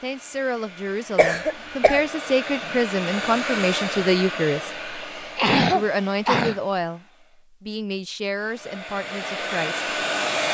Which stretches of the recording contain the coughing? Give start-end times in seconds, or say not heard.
1.1-2.0, 5.3-6.5.